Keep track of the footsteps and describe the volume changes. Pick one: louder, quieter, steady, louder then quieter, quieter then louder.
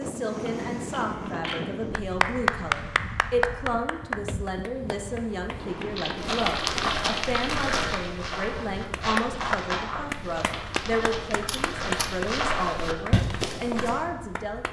quieter then louder.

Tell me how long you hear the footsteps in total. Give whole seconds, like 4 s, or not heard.
8 s.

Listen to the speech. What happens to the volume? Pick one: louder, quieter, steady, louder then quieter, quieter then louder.
steady.